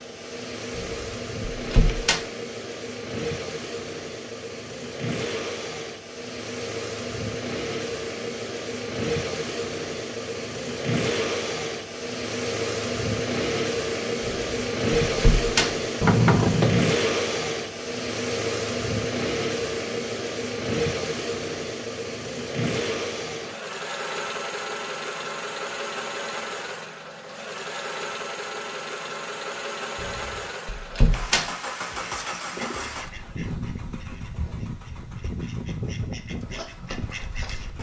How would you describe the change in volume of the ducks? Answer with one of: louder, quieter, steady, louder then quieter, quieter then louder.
quieter then louder.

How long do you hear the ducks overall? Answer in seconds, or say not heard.
6 s.